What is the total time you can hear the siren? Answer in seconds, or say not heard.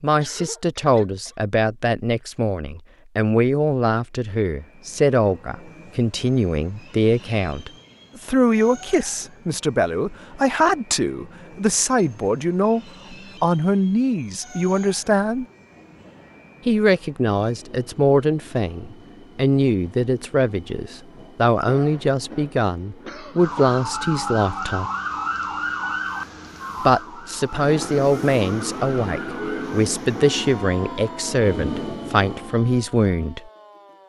11 s.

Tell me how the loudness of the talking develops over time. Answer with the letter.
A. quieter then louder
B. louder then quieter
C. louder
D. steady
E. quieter
D.